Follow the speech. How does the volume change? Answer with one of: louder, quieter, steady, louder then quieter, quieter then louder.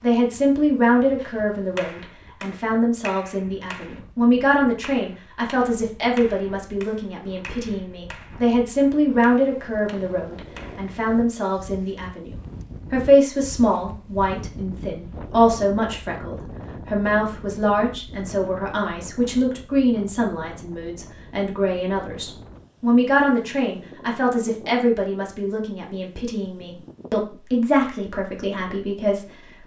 steady.